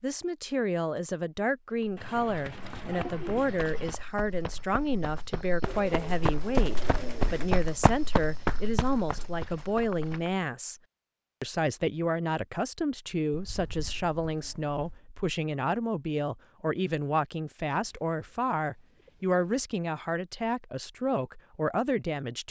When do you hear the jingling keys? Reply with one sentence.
The jingling keys can't be heard in this clip.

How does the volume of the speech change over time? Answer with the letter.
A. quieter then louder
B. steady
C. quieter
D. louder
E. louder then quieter
B.